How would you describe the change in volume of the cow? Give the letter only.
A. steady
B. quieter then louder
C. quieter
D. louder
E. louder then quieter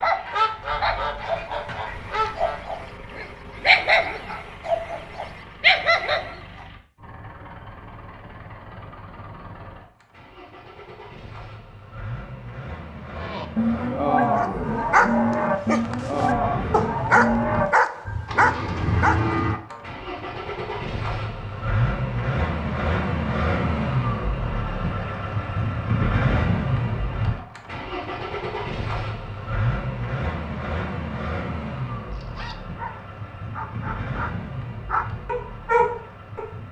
C.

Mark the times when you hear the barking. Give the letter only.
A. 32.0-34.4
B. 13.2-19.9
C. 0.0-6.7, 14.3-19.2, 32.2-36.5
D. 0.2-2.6
C.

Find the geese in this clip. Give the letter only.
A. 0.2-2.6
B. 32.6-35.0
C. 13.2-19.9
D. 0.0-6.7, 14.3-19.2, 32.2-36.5
A.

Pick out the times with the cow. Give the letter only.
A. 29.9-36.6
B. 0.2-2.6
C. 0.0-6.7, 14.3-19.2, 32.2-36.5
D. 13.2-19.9
D.